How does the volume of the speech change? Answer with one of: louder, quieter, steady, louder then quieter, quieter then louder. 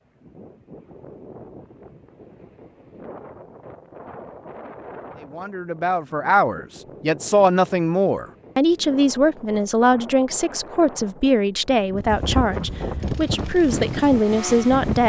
steady.